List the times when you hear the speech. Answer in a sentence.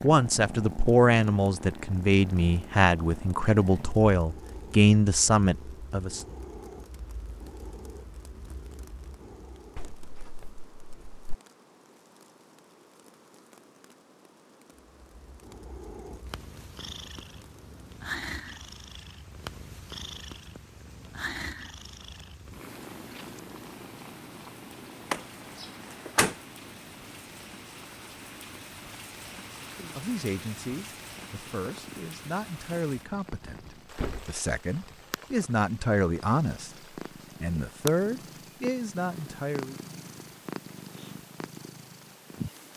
You can hear the speech from 0.0 to 6.2 s, from 29.9 to 36.7 s and from 37.4 to 39.8 s.